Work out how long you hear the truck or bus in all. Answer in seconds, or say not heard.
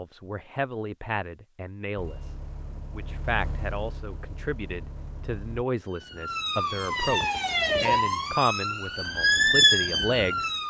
4 s.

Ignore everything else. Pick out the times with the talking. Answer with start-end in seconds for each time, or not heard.
0.0-10.5.